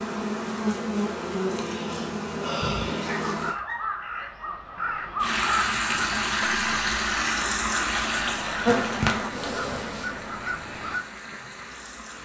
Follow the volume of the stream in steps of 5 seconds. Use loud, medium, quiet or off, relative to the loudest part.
off, loud, quiet.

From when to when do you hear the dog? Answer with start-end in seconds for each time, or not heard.
3.0-4.3.